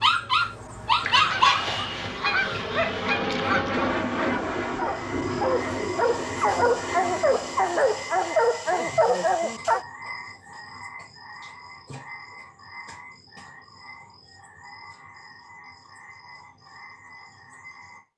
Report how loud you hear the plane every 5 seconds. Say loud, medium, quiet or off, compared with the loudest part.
loud, loud, off, off.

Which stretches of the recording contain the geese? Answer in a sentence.
The geese can be heard from 1.0 to 3.9 s.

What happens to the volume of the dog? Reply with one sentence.
The volume of the dog goes down, then up.